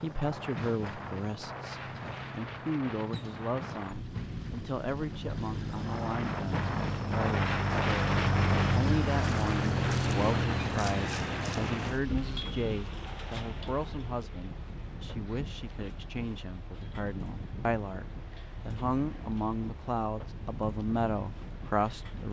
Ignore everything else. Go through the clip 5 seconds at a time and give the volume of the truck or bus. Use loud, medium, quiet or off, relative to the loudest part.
medium, loud, loud, quiet, quiet.